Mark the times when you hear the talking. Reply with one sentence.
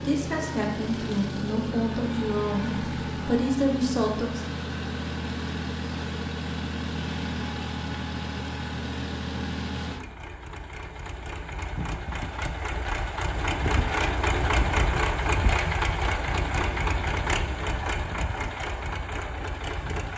The talking can be heard from 0.0 to 4.5 s.